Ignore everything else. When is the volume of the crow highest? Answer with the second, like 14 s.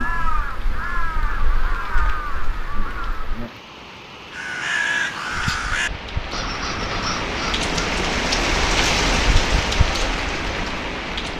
5 s.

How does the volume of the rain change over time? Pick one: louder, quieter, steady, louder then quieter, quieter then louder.
louder.